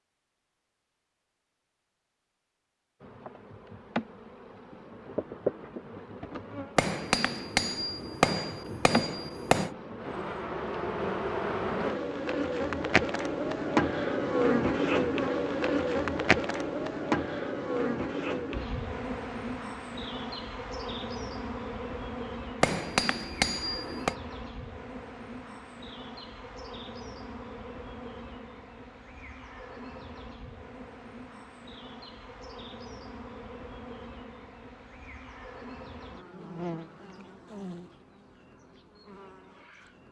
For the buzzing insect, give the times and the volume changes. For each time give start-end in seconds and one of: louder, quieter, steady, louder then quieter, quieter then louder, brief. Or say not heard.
3.0-40.0 louder then quieter.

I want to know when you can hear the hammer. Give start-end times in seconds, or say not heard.
6.8-9.7, 22.6-24.1.